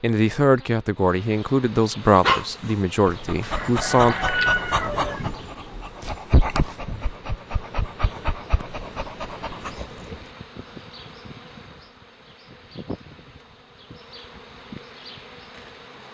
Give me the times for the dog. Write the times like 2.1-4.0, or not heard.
2.1-10.3.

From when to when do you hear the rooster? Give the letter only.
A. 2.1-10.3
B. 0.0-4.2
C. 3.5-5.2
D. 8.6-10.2
C.